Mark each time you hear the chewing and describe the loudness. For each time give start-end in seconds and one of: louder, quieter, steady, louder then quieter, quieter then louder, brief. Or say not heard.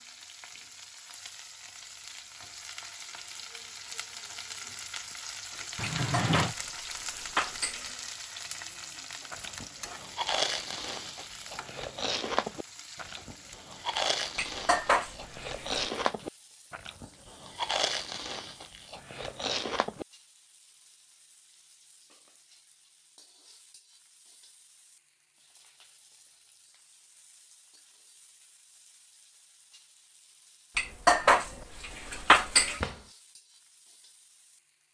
9.3-20.1 steady.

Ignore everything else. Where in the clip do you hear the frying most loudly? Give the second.
6 s.